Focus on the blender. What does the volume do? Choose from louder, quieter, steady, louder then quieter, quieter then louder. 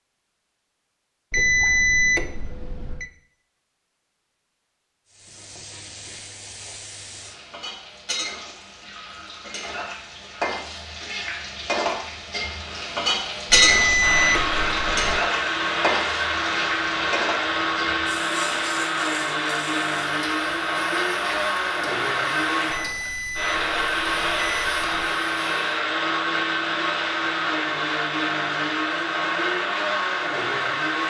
steady.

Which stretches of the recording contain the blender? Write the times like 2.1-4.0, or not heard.
14.0-31.0.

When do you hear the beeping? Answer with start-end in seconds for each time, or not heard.
1.3-3.0, 13.5-15.2, 22.7-25.1.